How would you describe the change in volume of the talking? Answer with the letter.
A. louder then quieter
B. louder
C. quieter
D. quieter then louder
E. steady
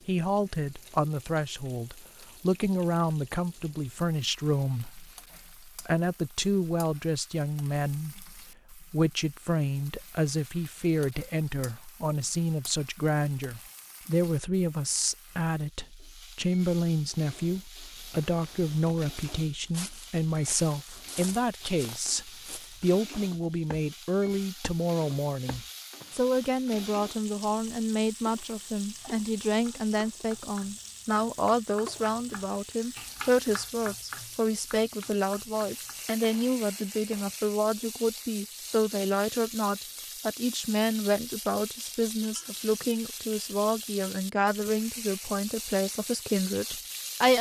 E.